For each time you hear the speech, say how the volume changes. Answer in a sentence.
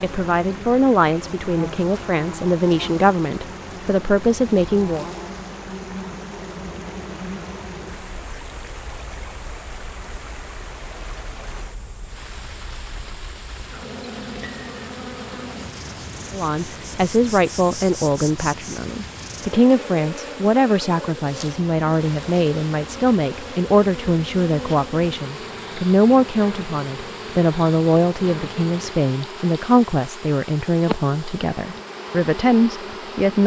You can hear the speech from 0.0 to 5.0 s, getting quieter then louder; and from 16.3 to 33.4 s, at a steady volume.